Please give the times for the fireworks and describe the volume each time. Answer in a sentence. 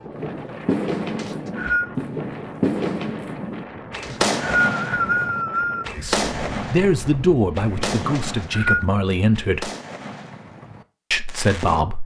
You can hear the fireworks from 0.1 to 11.8 s, getting quieter.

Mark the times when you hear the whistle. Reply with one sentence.
You can hear the whistle from 1.1 to 1.9 s, from 4.0 to 5.9 s and from 8.2 to 8.8 s.